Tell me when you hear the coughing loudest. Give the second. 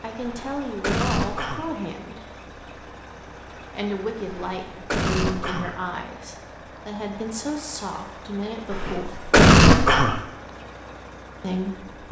10 s.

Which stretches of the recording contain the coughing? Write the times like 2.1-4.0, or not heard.
0.2-1.7, 4.2-5.8, 8.7-10.2.